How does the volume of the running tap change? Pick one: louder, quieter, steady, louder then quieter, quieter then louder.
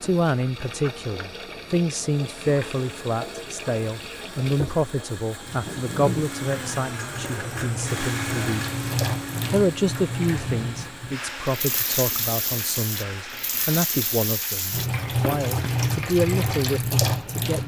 louder.